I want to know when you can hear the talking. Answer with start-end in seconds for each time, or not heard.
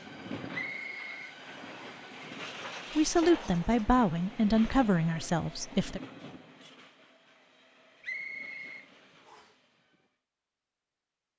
3.0-6.0.